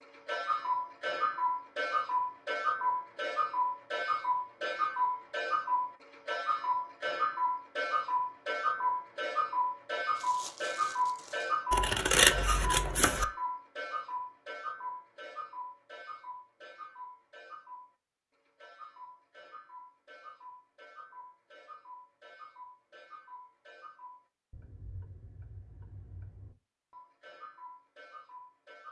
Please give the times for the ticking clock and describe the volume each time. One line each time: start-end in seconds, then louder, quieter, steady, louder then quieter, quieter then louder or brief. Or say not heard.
0.0-28.8 quieter.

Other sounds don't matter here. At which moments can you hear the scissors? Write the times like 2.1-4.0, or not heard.
11.7-13.2.